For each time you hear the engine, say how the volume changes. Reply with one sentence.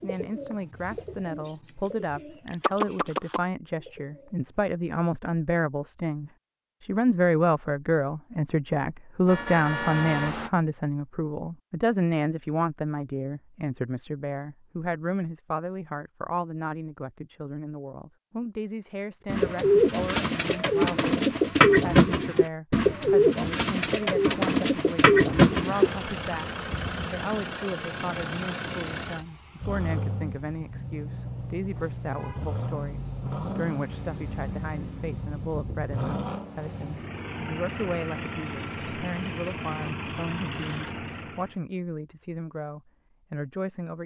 You can hear the engine from 25.4 to 41.5 s, at a steady volume.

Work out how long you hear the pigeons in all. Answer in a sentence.
The pigeons can be heard for 11 seconds in total.